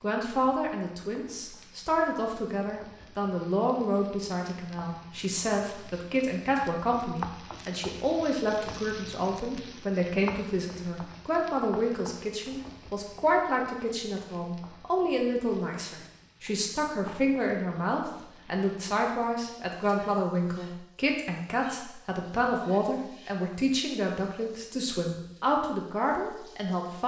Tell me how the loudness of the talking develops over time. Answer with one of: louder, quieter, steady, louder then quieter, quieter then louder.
steady.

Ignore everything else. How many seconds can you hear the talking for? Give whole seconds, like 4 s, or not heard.
27 s.